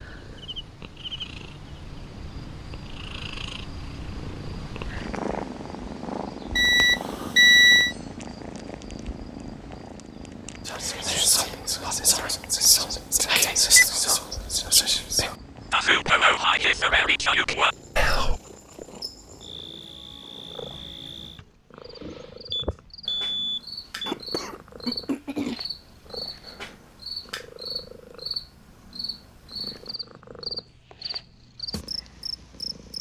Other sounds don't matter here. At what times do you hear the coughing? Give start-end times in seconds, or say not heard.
24.1-25.6.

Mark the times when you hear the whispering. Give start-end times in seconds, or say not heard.
10.7-18.4.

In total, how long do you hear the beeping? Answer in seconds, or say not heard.
3 s.